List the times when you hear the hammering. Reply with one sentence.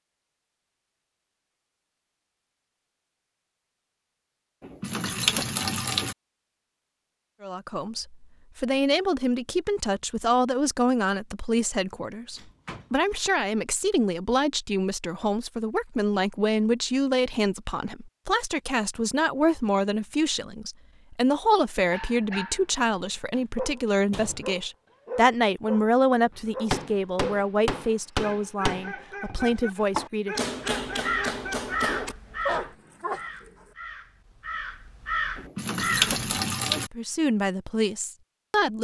The hammering can be heard from 26.7 to 32.1 s.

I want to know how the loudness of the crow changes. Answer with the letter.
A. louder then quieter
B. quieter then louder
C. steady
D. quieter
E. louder
B.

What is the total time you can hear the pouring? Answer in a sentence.
The pouring can be heard for 3 seconds in total.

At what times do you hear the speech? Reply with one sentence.
You can hear the speech from 7.4 to 30.5 s and from 36.7 to 38.7 s.